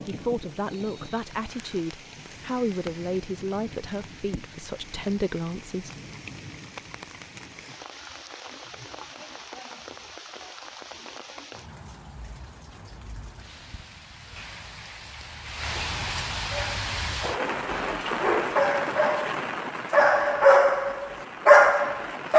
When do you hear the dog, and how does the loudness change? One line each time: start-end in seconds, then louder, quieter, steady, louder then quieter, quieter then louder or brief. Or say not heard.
16.5-22.3 louder.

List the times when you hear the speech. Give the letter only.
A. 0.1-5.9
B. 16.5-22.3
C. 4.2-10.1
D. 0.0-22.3
A.